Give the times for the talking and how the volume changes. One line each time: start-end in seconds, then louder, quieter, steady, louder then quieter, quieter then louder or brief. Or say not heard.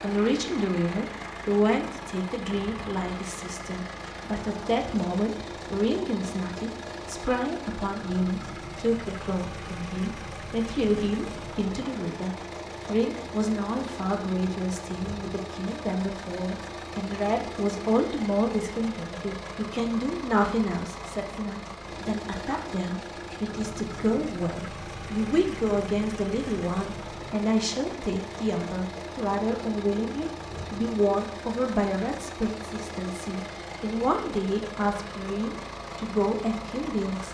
0.0-37.3 steady.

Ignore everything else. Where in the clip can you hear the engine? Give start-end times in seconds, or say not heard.
0.0-37.3.